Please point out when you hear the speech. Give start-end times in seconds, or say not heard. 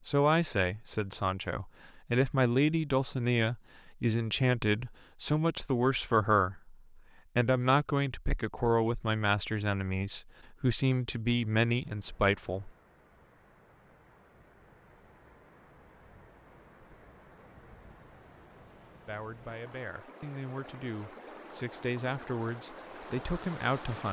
0.1-12.7, 19.1-24.0.